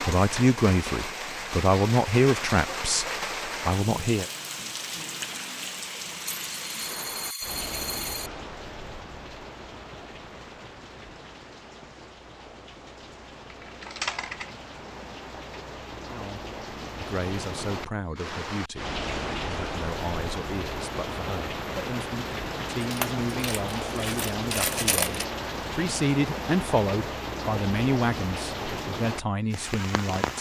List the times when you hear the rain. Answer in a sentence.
You can hear the rain from 0.0 to 30.3 s.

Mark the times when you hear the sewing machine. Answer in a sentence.
You can't hear the sewing machine here.